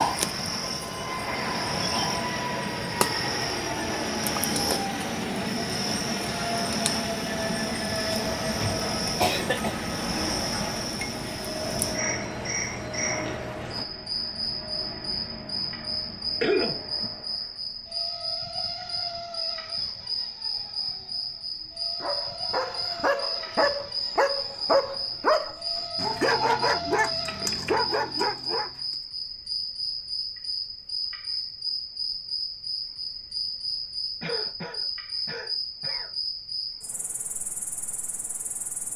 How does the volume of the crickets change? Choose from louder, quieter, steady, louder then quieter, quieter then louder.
steady.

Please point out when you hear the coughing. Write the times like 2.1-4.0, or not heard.
8.4-9.8, 16.4-17.1, 34.2-36.1.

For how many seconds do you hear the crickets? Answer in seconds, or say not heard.
39 s.